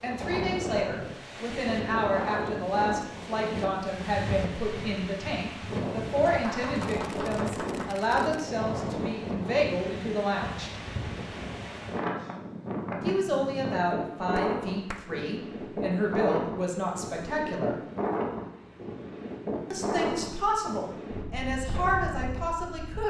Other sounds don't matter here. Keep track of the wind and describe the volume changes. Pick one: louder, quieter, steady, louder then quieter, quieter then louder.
steady.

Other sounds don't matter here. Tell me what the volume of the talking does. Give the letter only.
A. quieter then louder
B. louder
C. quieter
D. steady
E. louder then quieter
D.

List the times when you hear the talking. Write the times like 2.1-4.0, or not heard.
0.0-10.7, 13.0-17.8, 19.7-23.0.